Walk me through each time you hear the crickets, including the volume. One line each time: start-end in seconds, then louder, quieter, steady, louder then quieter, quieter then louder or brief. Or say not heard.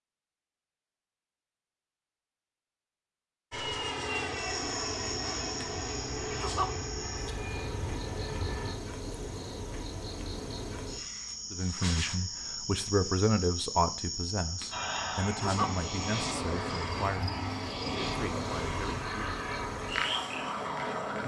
4.2-21.2 steady.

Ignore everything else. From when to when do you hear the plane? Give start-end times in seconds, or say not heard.
3.5-8.8, 14.7-21.2.